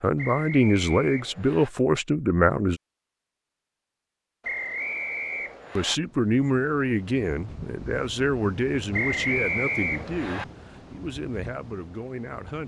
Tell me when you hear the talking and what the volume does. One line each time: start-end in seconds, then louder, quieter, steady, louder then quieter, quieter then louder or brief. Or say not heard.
0.0-2.8 brief
5.8-12.6 quieter.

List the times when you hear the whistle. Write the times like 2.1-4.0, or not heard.
0.1-1.7, 4.4-6.0, 8.9-10.4.